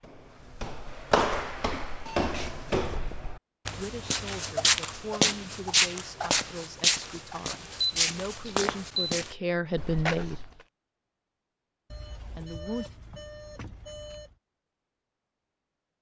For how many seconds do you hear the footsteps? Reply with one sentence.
The footsteps can be heard for 11 seconds in total.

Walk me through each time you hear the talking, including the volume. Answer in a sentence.
The talking can be heard from 3.6 to 10.4 s, getting louder; and briefly from 12.2 to 12.8 s.